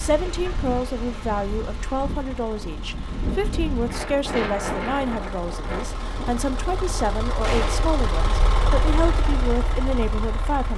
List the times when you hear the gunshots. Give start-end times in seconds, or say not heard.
7.4-8.0.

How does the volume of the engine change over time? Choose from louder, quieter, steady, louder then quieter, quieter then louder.
louder.